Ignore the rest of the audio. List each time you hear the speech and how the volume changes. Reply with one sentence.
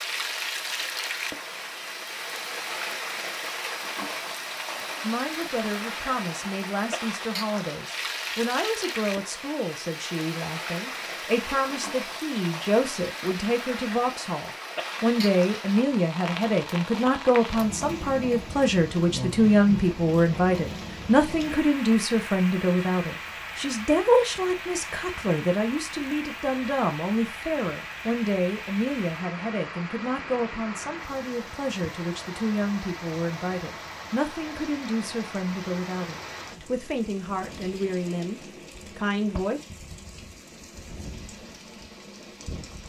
You can hear the speech from 5.0 to 39.6 s, getting louder then quieter.